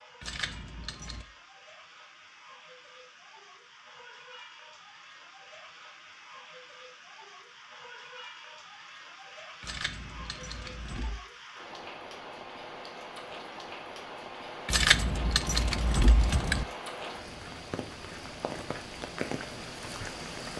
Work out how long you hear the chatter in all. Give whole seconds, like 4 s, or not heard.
not heard.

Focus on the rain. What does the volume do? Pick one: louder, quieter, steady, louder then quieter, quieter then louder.
louder.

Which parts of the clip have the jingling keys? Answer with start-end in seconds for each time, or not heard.
0.2-1.2, 9.6-11.2, 14.7-16.6.